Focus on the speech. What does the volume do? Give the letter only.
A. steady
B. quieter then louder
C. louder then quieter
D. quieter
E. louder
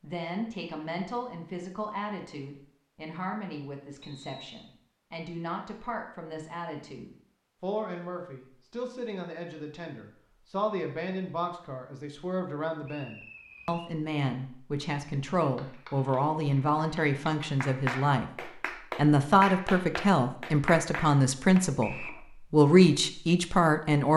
E.